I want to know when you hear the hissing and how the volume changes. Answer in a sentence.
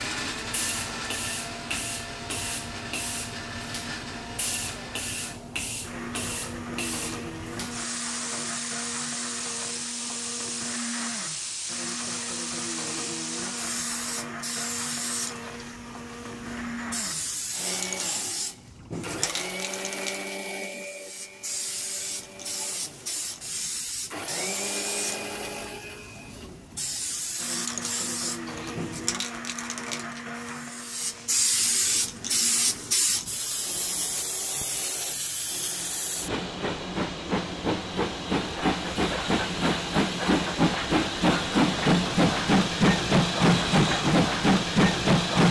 You can hear the hissing from 0.0 to 45.4 s, getting louder.